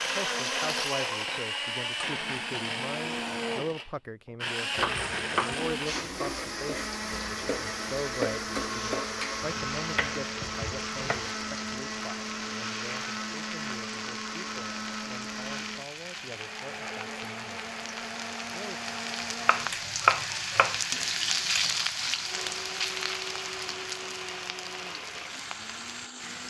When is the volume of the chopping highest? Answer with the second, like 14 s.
20 s.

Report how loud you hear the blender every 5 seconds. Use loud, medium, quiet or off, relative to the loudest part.
loud, loud, loud, medium, medium, medium.